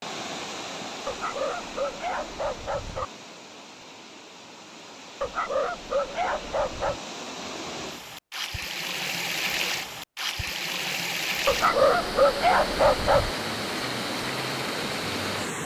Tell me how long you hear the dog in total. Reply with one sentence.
The dog can be heard for 6 seconds in total.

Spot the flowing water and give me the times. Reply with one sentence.
The flowing water can be heard from 0.0 to 15.6 s.